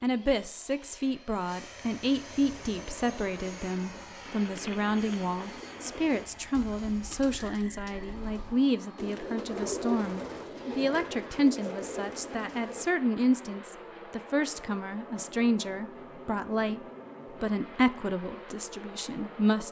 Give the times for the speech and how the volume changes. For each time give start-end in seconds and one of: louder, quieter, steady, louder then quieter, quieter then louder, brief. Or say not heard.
0.0-16.8 steady
17.4-19.6 brief.